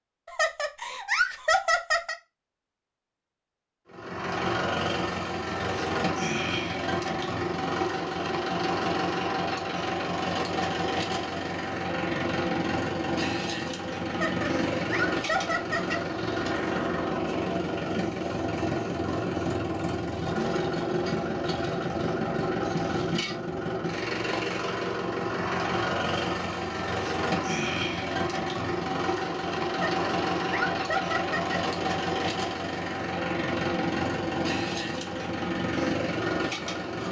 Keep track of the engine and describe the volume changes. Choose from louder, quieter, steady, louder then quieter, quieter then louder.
steady.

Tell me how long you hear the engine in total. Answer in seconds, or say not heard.
33 s.